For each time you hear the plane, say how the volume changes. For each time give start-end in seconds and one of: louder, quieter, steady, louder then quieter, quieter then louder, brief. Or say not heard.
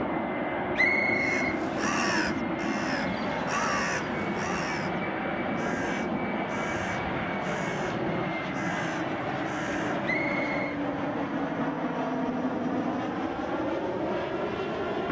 0.0-15.0 steady.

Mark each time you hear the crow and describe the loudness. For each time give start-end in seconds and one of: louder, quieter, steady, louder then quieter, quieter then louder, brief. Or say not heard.
1.1-10.0 quieter.